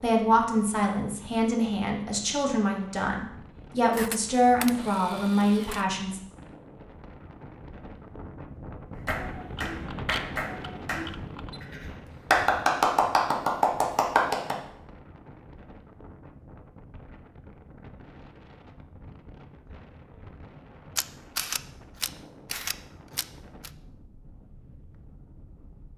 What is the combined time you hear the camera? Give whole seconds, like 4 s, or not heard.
7 s.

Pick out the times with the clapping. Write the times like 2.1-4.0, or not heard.
8.9-14.6.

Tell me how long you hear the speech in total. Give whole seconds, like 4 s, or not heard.
6 s.